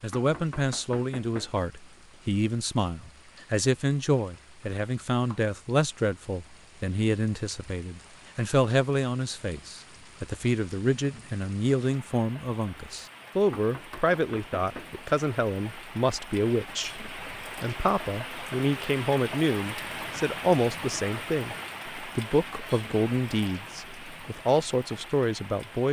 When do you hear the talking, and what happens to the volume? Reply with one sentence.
You can hear the talking from 0.0 to 25.8 s, at a steady volume.